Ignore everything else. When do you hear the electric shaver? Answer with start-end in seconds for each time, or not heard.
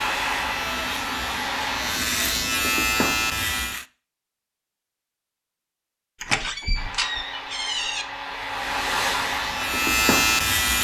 0.0-3.9, 8.5-10.7.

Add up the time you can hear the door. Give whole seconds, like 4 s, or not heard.
2 s.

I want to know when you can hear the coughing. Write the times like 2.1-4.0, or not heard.
not heard.